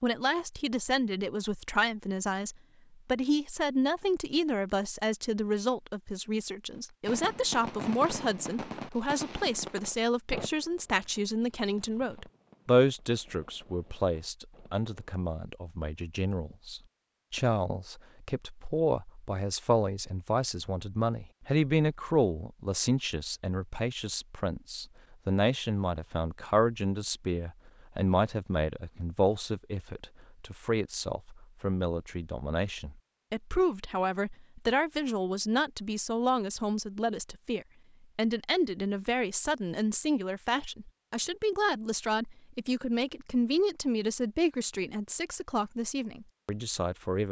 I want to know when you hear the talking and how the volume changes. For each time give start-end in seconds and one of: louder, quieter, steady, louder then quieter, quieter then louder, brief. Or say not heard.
0.0-47.2 steady.